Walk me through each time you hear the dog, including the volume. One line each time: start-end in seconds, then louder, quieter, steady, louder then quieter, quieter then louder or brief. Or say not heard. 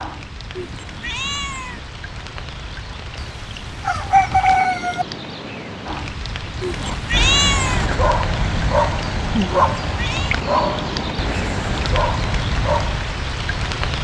6.7-13.2 steady.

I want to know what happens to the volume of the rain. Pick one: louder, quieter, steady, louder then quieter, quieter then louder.
louder.